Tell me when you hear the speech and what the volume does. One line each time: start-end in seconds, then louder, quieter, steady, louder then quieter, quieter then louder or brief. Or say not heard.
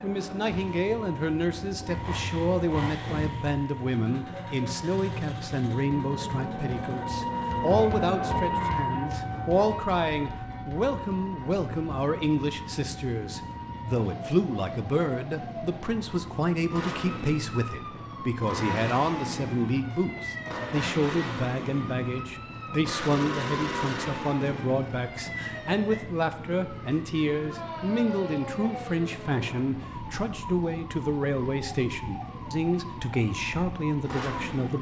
0.0-34.7 steady.